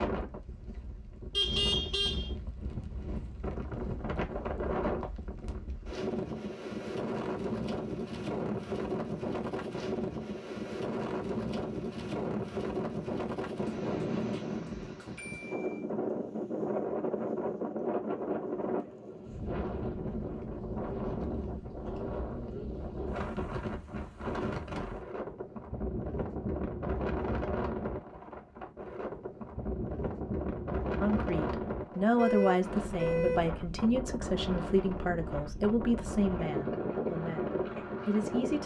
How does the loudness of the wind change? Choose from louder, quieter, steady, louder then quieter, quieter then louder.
steady.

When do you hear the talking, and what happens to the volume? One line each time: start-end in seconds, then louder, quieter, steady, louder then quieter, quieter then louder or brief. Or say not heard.
31.0-38.6 quieter.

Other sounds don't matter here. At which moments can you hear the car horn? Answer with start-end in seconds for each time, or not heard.
1.3-2.3, 15.2-15.8, 32.1-33.5.